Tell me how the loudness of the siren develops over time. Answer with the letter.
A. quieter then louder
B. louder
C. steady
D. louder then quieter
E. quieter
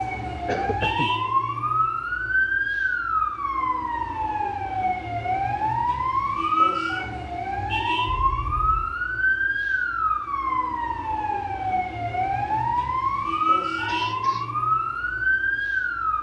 C.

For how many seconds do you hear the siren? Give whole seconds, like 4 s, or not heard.
16 s.